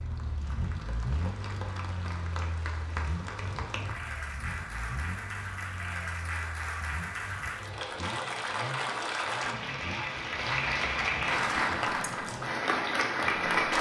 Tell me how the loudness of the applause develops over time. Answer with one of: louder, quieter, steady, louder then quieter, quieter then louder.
louder.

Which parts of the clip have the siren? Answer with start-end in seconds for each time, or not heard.
not heard.